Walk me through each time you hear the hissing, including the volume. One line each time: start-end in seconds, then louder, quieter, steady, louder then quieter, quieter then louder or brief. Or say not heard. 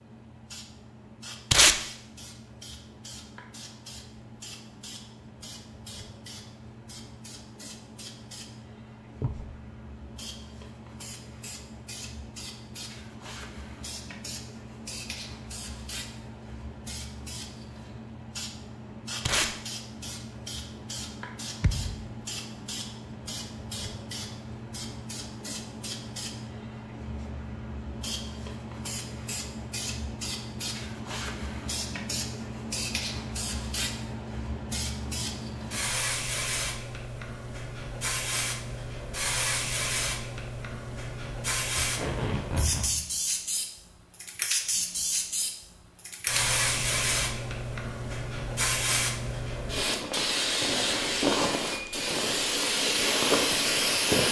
0.0-54.2 louder.